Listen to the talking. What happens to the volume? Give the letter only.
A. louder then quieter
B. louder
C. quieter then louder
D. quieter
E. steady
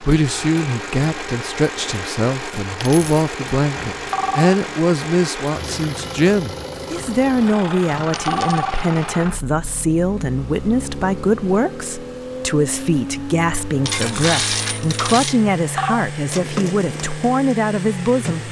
E.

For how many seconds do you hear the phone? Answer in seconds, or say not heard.
2 s.